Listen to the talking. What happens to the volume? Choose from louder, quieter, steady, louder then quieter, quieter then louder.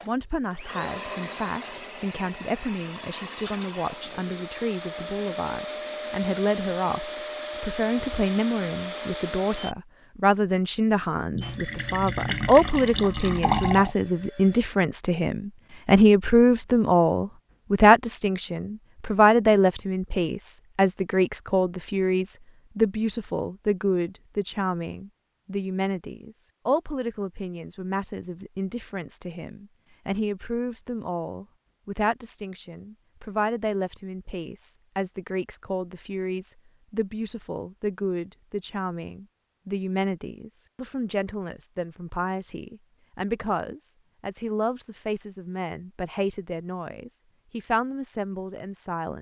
louder then quieter.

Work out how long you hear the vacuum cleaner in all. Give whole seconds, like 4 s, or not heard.
13 s.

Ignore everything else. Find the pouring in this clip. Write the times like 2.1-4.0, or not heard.
11.3-13.9.